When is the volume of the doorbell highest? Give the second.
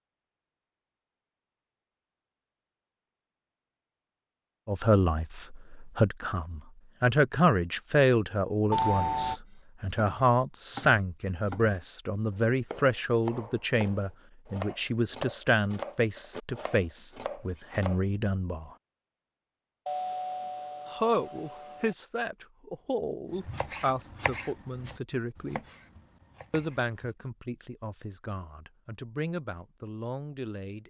9 s.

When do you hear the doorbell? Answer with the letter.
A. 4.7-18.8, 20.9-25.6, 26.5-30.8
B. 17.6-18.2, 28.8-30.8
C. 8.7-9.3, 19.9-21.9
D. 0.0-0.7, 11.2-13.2
C.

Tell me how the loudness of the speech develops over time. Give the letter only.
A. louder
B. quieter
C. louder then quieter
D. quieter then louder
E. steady
B.